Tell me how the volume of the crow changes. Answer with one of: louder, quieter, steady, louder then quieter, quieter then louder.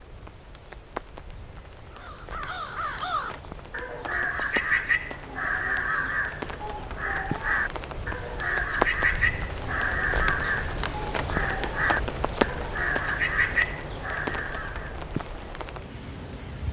steady.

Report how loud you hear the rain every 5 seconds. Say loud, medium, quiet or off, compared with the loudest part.
medium, loud, loud, medium.